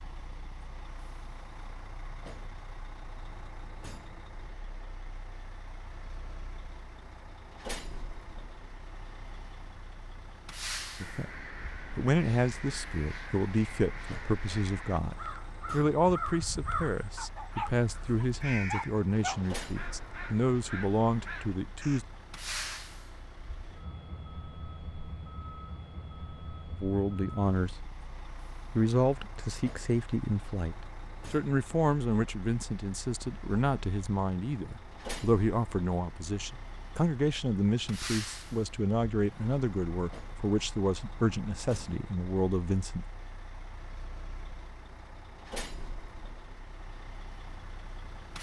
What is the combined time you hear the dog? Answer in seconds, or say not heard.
2 s.